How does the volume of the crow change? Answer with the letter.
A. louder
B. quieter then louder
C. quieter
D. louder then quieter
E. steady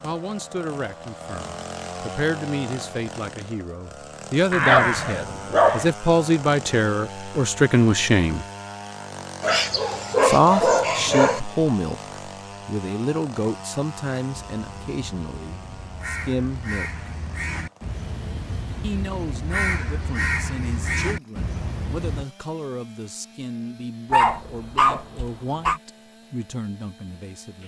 A.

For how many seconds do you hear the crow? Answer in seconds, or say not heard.
8 s.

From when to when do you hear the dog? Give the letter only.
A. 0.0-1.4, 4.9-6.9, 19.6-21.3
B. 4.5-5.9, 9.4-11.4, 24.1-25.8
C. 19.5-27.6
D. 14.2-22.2
B.